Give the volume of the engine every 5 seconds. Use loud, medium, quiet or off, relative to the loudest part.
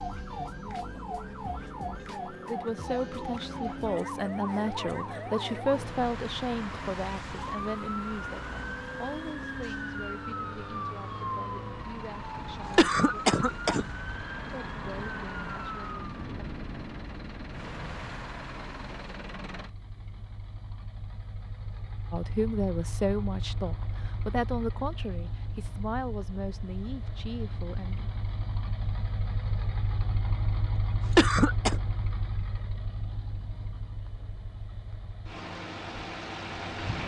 medium, medium, medium, medium, medium, loud, loud, loud.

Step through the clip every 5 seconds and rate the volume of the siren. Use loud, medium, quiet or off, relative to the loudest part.
loud, loud, loud, loud, off, off, off, off.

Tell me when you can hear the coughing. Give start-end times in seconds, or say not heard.
12.3-13.8, 30.8-31.8.